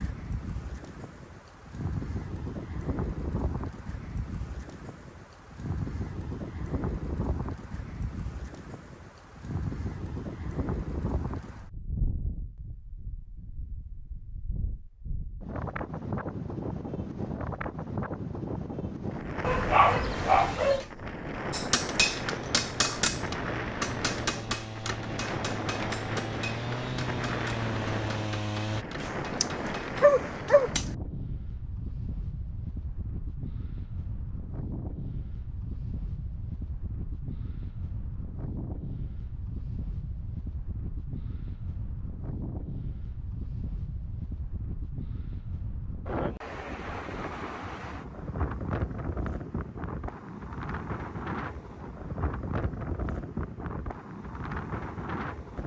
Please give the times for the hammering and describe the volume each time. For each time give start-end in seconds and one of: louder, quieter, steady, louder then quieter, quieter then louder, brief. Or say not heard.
21.5-30.1 quieter.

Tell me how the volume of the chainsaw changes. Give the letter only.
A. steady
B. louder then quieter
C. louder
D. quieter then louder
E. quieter
C.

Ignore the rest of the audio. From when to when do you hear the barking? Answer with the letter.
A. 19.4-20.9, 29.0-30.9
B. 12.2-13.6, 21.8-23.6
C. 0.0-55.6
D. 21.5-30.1
A.